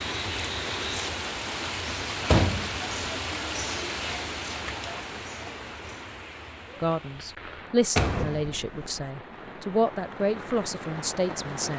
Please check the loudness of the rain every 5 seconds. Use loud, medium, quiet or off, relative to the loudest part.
loud, medium, medium.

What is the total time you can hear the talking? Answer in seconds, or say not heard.
5 s.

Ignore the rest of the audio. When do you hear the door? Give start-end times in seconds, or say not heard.
2.2-2.8, 8.0-9.0.